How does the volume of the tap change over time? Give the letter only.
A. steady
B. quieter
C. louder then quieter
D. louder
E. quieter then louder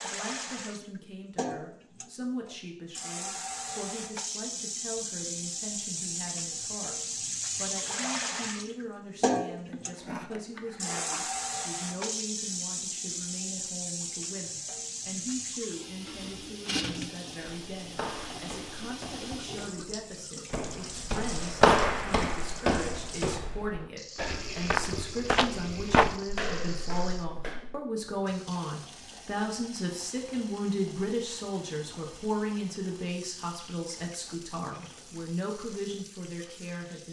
B.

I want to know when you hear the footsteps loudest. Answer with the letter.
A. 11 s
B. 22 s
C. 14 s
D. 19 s
B.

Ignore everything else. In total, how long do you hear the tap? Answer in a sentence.
The tap can be heard for 37 seconds in total.